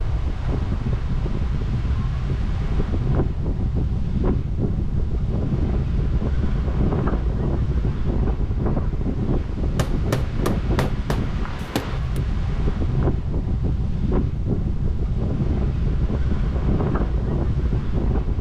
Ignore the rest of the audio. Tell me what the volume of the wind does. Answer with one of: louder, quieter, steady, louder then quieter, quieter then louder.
steady.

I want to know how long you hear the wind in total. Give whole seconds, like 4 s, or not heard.
18 s.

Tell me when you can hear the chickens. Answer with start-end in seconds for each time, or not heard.
not heard.